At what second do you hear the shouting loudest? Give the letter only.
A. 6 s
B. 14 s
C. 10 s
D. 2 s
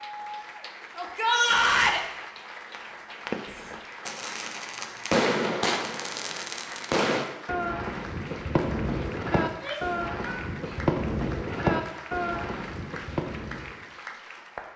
D.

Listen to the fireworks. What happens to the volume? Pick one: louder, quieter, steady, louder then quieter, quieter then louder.
steady.